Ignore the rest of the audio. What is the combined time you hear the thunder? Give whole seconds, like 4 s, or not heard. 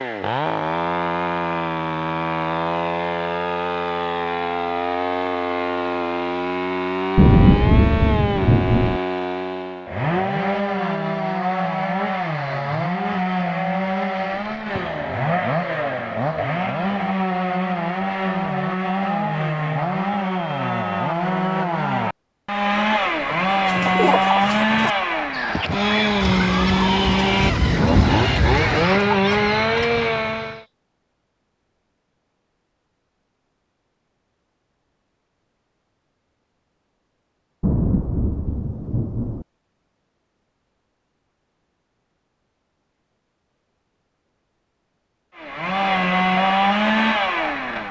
6 s.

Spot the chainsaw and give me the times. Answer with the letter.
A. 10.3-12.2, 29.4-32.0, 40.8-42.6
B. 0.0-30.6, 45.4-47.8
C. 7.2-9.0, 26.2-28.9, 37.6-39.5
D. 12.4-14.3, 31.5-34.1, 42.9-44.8
B.